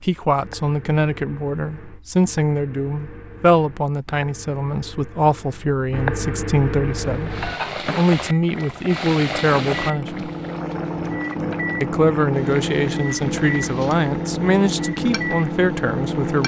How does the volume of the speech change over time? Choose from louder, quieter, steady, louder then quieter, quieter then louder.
steady.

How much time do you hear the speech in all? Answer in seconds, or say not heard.
15 s.